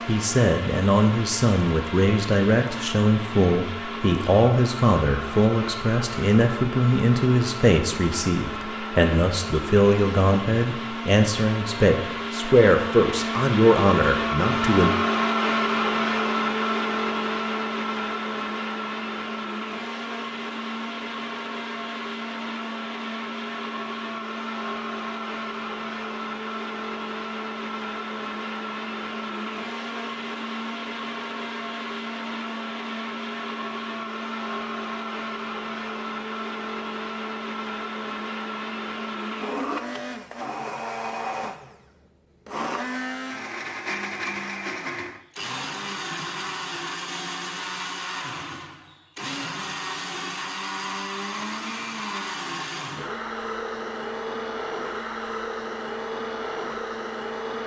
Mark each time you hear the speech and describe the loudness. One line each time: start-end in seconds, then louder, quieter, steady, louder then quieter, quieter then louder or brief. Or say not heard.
0.1-14.9 steady.